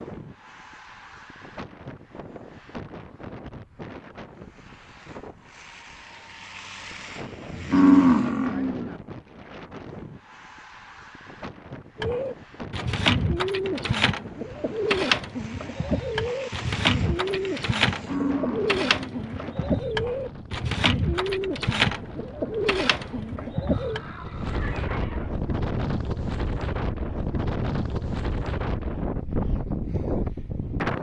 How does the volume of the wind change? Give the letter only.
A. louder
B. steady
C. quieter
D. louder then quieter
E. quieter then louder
A.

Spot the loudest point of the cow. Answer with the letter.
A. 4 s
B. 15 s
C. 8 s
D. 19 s
C.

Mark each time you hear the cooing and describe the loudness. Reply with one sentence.
You can hear the cooing from 12.0 to 24.0 s, at a steady volume.